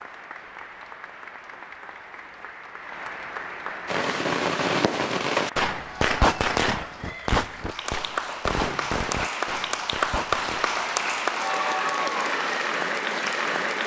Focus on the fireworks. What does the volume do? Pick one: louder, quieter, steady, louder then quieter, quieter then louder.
quieter.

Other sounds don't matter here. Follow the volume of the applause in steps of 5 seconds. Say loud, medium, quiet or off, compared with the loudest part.
quiet, medium, loud.